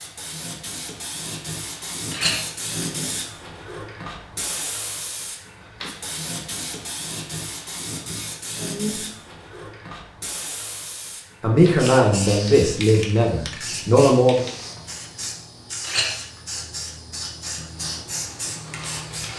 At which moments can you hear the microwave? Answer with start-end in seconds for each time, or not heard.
not heard.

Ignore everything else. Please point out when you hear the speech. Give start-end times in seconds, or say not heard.
8.6-9.0, 11.4-14.4.